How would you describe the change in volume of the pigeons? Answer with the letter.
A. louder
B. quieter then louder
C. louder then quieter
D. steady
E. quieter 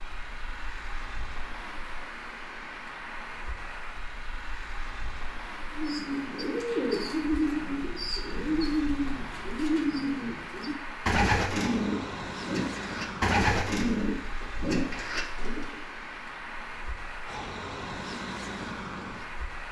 D.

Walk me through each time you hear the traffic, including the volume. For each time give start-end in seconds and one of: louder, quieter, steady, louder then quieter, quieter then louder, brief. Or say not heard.
0.0-19.6 steady.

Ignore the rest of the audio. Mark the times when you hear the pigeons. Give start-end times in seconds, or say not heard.
5.7-15.8.